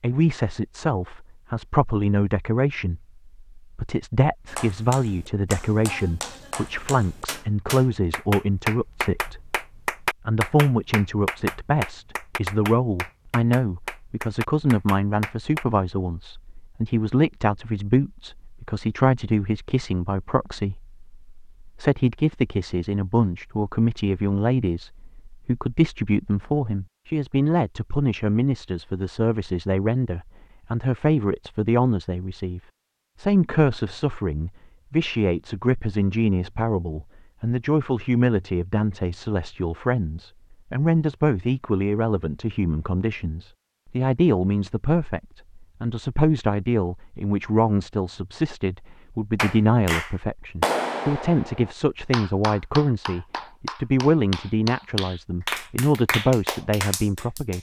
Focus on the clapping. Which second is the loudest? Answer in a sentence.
The loudest moment of the clapping is at 51 seconds.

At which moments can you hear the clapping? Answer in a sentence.
The clapping can be heard from 4.5 to 15.7 s and from 49.4 to 57.5 s.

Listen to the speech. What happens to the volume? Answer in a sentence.
The volume of the speech stays about the same.